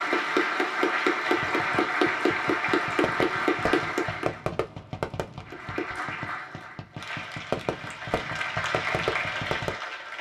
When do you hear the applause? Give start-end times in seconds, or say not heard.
0.0-4.4, 5.5-10.1.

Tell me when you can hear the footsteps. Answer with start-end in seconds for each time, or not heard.
not heard.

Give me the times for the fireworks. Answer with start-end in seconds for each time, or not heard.
1.2-9.8.